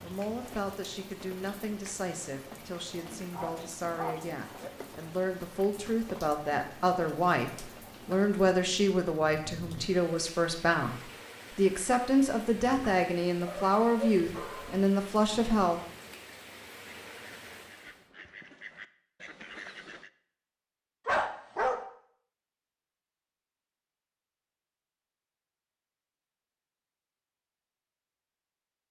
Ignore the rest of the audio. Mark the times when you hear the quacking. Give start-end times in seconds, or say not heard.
16.9-20.1.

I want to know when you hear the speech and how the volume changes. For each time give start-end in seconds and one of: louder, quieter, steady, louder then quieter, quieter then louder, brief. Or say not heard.
0.0-15.8 louder.